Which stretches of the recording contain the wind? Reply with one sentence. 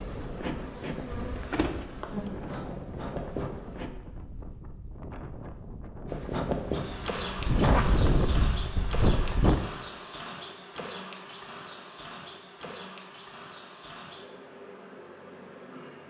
You can hear the wind from 0.0 to 9.6 s.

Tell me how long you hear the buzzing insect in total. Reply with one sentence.
You can hear the buzzing insect for 14 seconds altogether.